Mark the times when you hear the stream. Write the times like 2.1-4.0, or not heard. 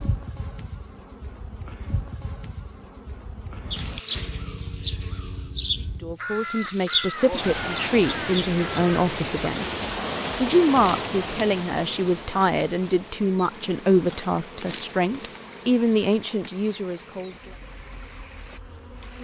7.2-19.2.